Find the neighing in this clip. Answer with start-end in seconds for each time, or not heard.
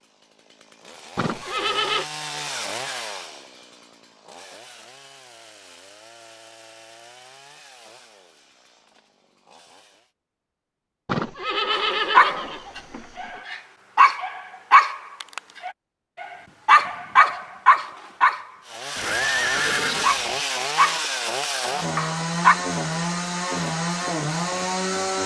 1.1-2.0, 11.1-13.4, 18.9-20.4.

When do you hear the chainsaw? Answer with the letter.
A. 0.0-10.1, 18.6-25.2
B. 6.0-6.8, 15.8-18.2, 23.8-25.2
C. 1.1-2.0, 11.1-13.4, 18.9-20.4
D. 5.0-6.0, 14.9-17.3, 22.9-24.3
A.